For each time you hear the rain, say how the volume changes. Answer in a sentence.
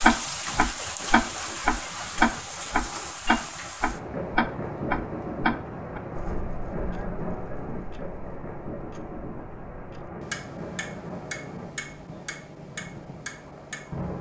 The rain can be heard from 0.0 to 14.1 s, getting quieter.